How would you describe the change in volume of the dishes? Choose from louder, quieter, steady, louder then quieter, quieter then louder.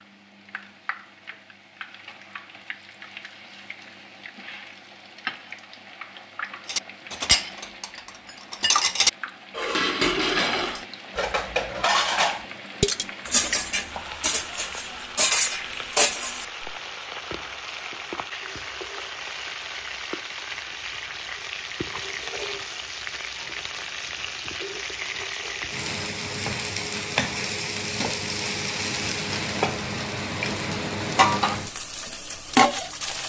steady.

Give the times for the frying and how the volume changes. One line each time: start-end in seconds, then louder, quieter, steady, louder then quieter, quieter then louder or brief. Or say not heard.
0.0-33.2 louder.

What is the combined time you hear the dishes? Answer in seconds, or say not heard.
10 s.